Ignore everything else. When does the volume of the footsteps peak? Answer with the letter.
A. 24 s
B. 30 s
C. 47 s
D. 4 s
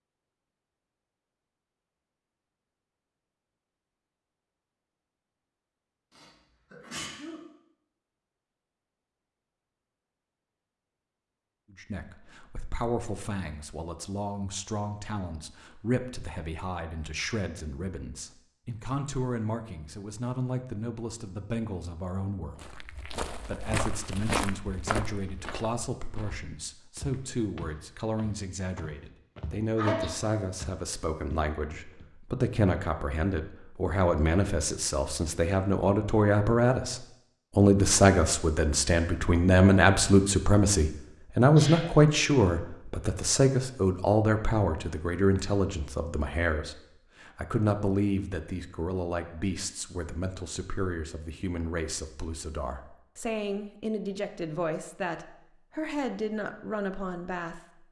A.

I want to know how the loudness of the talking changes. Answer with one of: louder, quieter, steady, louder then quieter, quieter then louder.
louder then quieter.